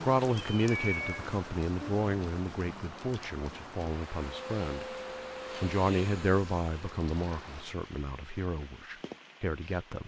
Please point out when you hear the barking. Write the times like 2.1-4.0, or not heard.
not heard.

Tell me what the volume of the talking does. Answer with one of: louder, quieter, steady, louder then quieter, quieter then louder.
quieter.